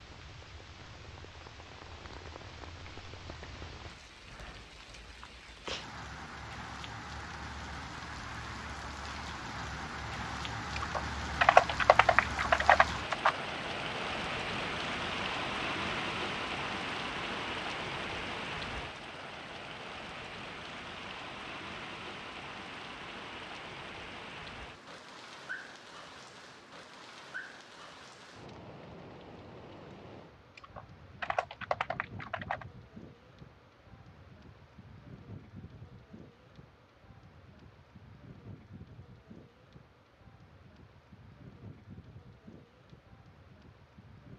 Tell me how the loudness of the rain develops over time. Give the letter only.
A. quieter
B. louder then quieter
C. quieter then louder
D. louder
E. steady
B.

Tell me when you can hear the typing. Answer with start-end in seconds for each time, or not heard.
10.8-13.3, 30.6-32.6.